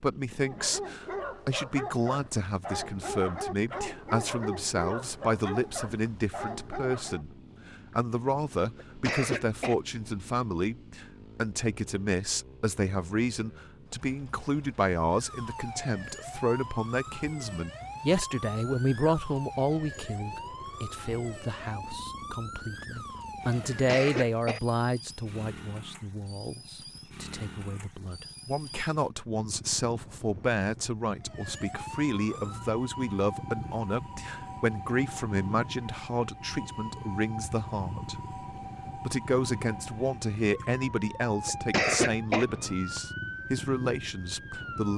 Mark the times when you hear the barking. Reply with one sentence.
You can hear the barking from 0.4 to 7.2 s.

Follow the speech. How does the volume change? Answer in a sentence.
The loudness of the speech stays about the same.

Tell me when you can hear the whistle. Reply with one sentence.
The whistle can't be heard in this clip.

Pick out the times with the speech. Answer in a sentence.
You can hear the speech from 0.0 to 38.4 s and from 39.0 to 44.9 s.